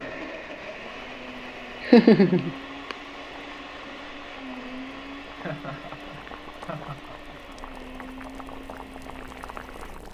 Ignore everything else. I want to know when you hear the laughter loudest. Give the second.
2 s.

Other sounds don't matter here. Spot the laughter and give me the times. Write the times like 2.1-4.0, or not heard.
1.8-3.0, 5.3-7.8.